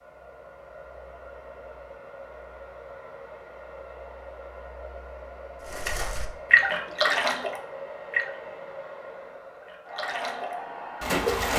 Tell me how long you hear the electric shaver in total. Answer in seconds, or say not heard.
not heard.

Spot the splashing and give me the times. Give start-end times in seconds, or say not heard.
5.7-8.3, 9.6-11.5.